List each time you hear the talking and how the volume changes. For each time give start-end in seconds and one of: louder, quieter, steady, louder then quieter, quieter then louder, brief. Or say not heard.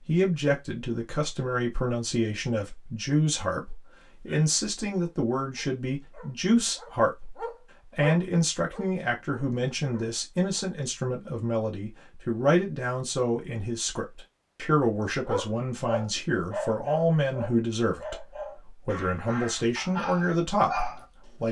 0.1-21.4 steady.